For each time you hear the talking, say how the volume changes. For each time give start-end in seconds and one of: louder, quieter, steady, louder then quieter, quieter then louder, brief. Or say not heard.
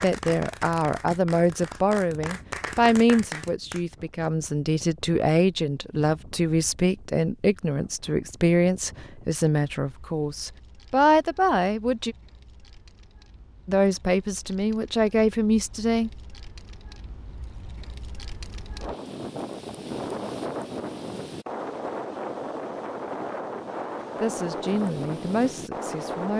0.0-12.2 steady
13.7-16.2 brief
24.2-26.3 brief.